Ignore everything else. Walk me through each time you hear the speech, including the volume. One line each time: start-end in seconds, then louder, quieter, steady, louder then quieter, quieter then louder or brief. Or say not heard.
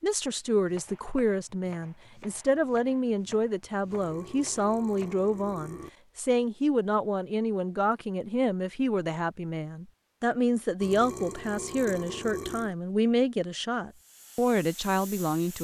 0.0-15.5 steady.